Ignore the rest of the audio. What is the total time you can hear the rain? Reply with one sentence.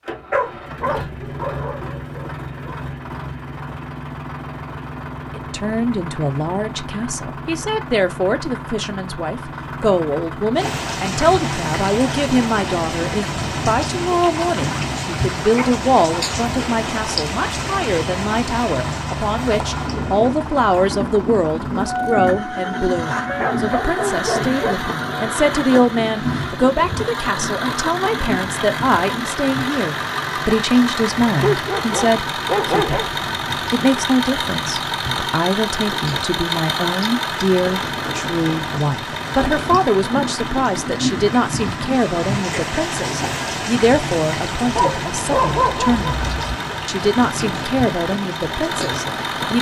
The rain can be heard for 39 seconds in total.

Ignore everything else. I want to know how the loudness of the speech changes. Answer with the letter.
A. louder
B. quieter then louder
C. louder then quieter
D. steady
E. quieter
D.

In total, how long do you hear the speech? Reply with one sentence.
You can hear the speech for 44 seconds altogether.